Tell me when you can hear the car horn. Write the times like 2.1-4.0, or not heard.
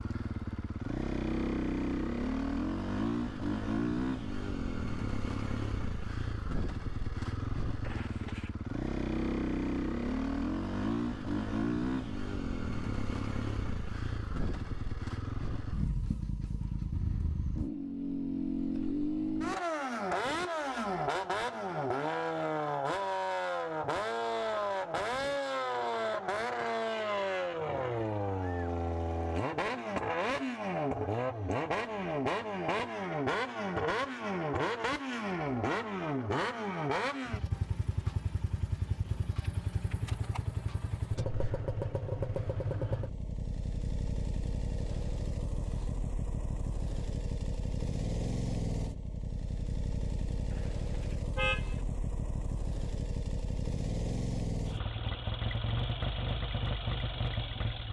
7.8-8.6, 50.5-51.8.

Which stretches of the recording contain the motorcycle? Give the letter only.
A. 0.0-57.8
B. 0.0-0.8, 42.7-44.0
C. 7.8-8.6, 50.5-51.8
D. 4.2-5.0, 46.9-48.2
A.